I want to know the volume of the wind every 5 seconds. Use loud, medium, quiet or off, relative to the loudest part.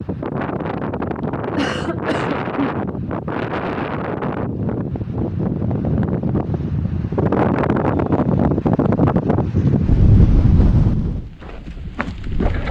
medium, loud, loud.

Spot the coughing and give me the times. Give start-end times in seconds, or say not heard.
1.6-2.8.